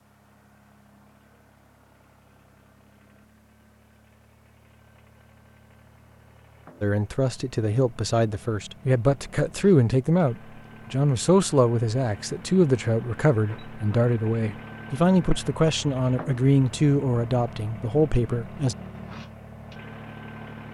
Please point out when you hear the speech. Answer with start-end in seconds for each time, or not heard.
6.8-18.8.